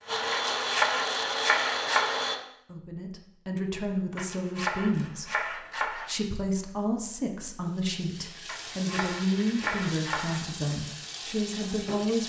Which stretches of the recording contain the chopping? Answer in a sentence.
The chopping can be heard from 0.3 to 2.2 s, from 4.2 to 6.2 s and from 8.4 to 10.4 s.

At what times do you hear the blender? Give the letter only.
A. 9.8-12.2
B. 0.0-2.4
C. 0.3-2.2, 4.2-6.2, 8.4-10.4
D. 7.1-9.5
B.